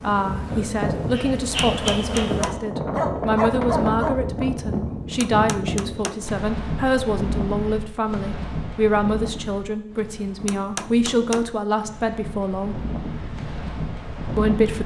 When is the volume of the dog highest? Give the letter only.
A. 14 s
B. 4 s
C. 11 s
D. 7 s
B.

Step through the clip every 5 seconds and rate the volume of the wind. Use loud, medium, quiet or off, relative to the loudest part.
loud, loud, medium.